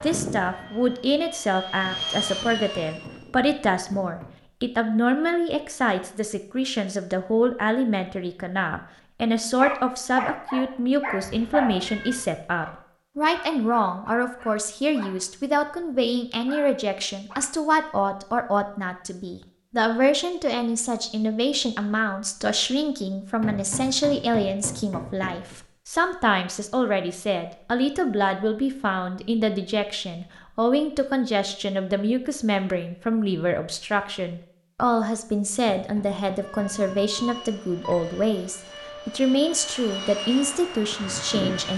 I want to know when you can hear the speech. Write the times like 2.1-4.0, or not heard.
0.0-41.7.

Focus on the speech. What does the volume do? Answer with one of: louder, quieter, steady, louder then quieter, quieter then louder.
steady.